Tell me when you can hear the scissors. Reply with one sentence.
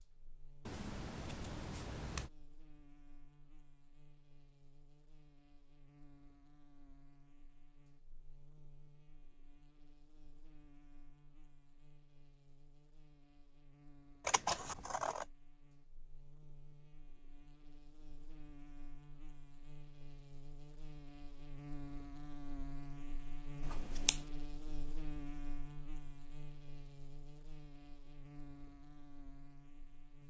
You can hear the scissors from 0.7 to 2.3 s, from 14.2 to 15.2 s and from 23.6 to 24.2 s.